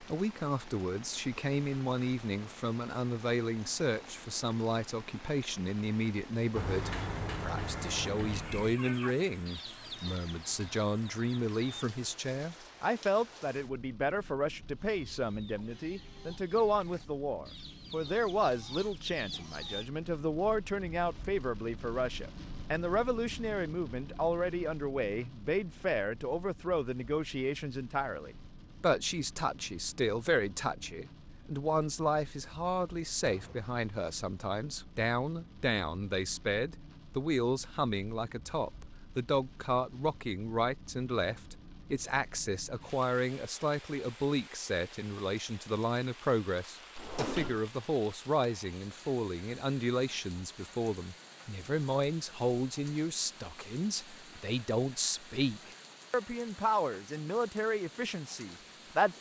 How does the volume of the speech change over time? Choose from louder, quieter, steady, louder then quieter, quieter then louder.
steady.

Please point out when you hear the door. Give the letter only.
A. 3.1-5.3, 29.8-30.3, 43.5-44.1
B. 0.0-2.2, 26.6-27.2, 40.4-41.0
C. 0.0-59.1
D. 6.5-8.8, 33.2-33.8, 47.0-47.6
D.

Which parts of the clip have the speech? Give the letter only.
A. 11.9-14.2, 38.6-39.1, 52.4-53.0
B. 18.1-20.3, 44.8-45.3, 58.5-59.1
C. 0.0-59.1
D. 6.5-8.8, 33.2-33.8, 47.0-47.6
C.